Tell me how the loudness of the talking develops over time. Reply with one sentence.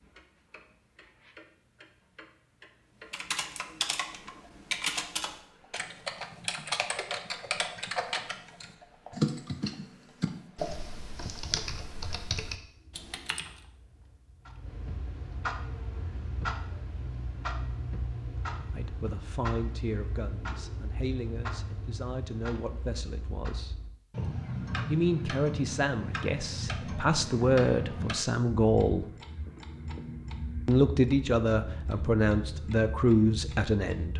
The loudness of the talking goes up.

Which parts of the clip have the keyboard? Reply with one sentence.
The keyboard can be heard from 3.1 to 13.6 s.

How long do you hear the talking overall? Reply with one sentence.
You can hear the talking for 13 seconds altogether.